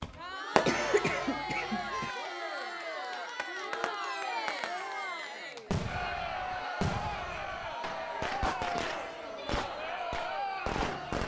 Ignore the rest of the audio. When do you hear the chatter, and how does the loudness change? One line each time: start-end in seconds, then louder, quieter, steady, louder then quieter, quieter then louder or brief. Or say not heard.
0.0-11.2 steady.